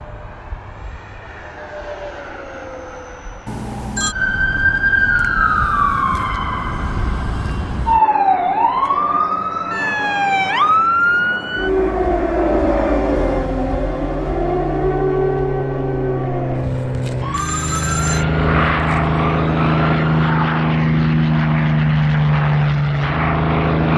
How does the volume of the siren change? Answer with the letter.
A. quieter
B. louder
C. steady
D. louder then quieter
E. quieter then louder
A.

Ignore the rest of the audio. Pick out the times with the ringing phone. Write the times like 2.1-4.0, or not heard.
3.5-4.2, 17.3-18.2.